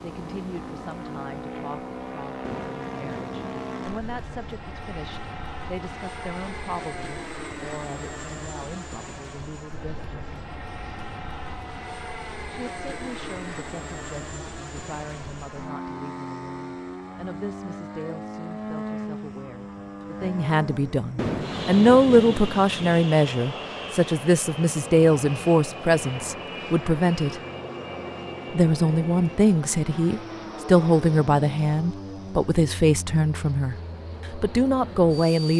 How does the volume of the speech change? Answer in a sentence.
The volume of the speech goes up.